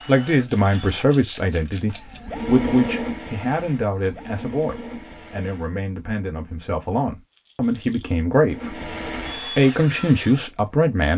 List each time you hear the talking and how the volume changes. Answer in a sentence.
You can hear the talking from 0.1 to 11.1 s, getting quieter then louder.